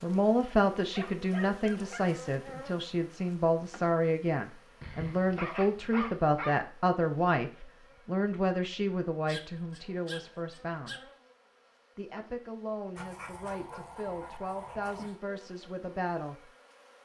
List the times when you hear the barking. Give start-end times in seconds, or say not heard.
0.9-2.0, 4.8-6.6, 9.2-11.1, 12.9-15.2.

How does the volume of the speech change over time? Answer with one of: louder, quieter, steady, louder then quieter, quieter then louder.
quieter.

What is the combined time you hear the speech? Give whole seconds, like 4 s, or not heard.
15 s.